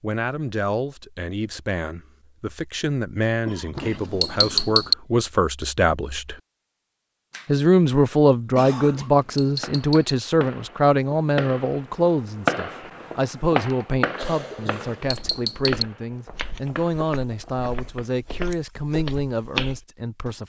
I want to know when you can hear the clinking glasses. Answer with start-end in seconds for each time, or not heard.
3.8-5.0, 9.0-10.2, 14.7-15.8.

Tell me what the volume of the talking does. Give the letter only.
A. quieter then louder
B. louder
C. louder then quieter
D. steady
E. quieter
C.